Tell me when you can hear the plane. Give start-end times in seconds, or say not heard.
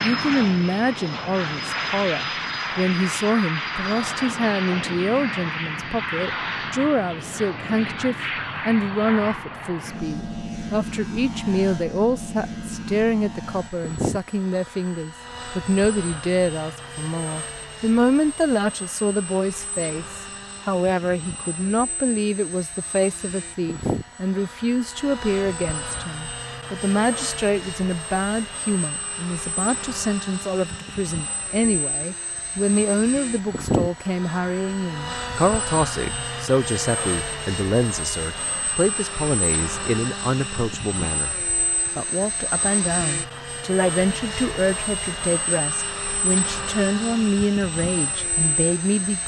0.0-49.2.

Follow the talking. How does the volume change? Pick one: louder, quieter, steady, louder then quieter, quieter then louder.
steady.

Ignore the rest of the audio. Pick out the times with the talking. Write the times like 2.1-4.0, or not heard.
0.0-41.4, 42.0-49.2.